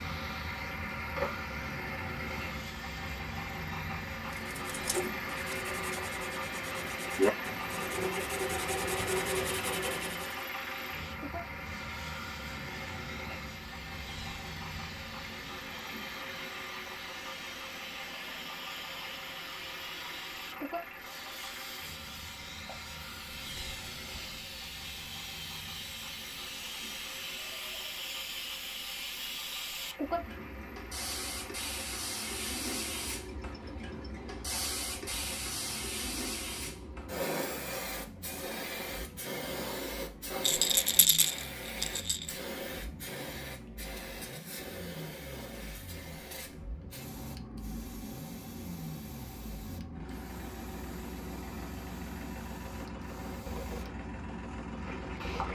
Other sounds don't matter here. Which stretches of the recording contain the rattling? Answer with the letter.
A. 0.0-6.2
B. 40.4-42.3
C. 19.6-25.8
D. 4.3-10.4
B.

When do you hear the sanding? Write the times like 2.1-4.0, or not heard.
4.3-10.4.